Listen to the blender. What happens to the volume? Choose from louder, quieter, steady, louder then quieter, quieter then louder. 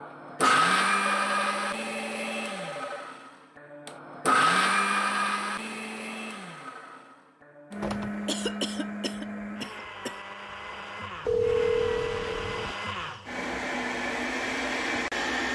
quieter then louder.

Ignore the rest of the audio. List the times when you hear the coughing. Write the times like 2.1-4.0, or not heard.
8.2-10.2.